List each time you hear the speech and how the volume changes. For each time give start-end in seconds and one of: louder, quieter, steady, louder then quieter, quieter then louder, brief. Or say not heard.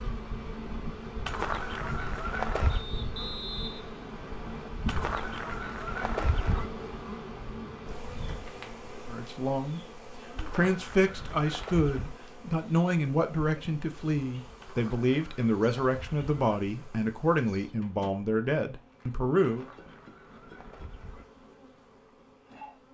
9.1-9.8 brief
10.5-19.6 steady.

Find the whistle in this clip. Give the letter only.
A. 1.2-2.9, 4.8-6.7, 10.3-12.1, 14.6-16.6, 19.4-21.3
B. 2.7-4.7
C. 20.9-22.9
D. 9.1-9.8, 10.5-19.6
B.